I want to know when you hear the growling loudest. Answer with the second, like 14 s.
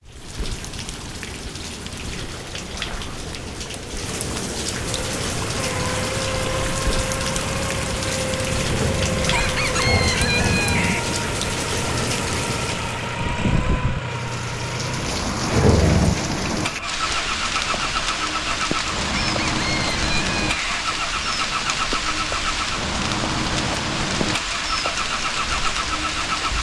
16 s.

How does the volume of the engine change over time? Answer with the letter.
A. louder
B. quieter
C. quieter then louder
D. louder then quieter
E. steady
E.